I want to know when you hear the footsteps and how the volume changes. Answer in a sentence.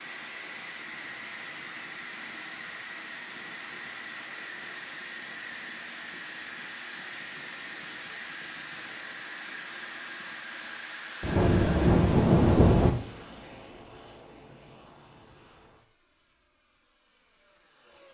You can't hear the footsteps here.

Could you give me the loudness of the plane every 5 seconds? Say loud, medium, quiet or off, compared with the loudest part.
loud, loud, loud, quiet.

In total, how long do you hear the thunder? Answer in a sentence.
The thunder can be heard for 2 seconds in total.